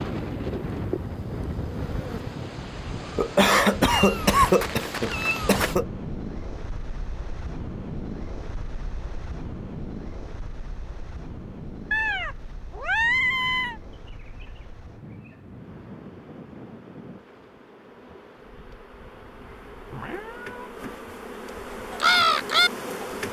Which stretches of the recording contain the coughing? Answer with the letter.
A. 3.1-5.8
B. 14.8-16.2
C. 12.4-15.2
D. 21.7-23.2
A.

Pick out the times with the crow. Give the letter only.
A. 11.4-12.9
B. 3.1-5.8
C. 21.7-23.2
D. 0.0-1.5
C.